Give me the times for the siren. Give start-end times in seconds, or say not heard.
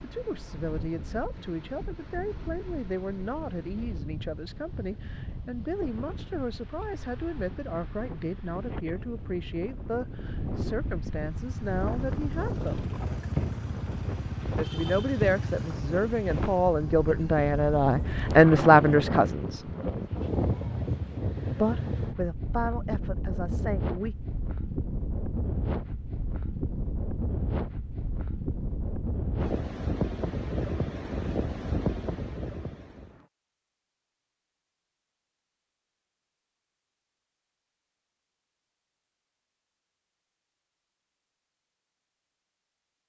not heard.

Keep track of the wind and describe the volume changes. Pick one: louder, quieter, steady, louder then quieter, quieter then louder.
louder.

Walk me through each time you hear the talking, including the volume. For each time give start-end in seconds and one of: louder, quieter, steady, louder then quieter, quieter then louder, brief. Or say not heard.
0.0-12.9 steady
14.6-19.7 louder
21.6-24.1 brief.